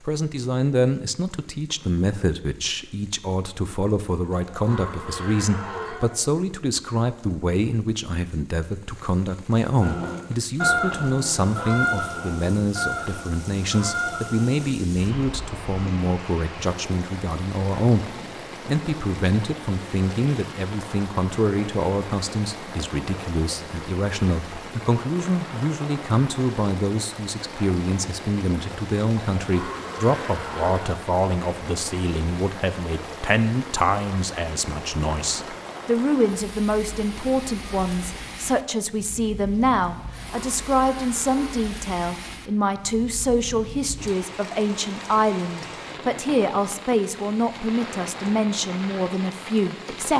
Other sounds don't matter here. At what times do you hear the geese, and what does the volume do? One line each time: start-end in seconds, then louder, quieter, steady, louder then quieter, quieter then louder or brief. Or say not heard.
9.8-15.7 quieter.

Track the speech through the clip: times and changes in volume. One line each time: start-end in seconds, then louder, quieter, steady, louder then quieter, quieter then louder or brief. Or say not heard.
0.1-50.1 steady.